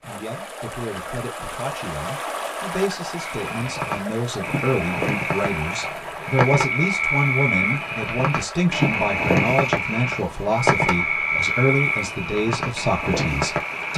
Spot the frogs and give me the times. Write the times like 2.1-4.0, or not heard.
3.2-13.9.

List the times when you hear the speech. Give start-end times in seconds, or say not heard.
0.0-13.9.